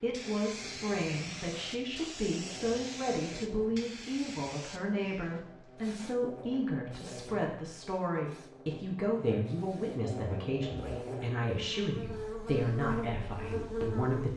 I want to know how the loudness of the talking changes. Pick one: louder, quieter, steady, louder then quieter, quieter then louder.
steady.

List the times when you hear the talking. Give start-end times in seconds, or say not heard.
0.0-14.3.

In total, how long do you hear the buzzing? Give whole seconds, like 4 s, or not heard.
14 s.